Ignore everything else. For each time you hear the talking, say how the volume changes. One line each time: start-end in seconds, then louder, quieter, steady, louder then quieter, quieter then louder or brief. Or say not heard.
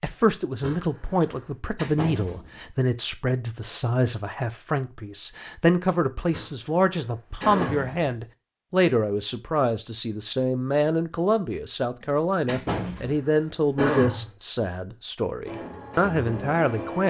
0.0-17.0 steady.